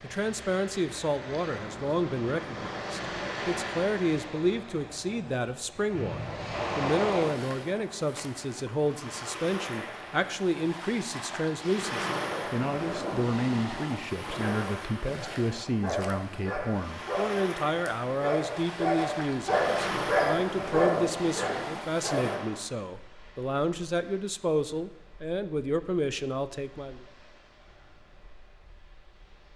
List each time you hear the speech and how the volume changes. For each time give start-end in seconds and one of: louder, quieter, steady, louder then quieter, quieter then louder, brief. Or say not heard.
0.0-27.1 steady.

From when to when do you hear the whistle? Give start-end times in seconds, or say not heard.
6.0-6.8.